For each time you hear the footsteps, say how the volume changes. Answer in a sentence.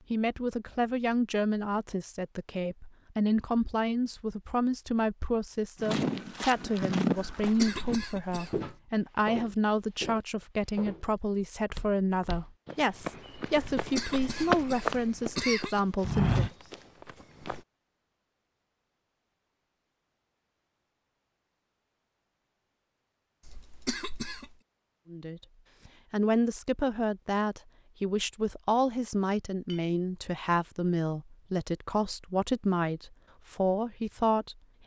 The footsteps can be heard from 5.8 to 17.6 s, getting quieter then louder.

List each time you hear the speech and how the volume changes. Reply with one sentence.
You can hear the speech from 0.1 to 16.4 s, at a steady volume; and from 25.1 to 34.5 s, at a steady volume.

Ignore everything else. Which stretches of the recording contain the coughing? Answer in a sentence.
The coughing can be heard from 7.4 to 8.8 s, from 13.8 to 15.8 s and from 23.4 to 24.6 s.